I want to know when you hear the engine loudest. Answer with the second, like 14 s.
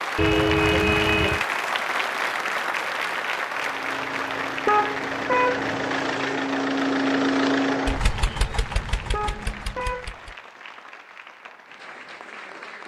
7 s.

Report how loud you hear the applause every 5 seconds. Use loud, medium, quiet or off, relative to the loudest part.
loud, medium, quiet.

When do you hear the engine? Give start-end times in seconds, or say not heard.
3.5-10.3.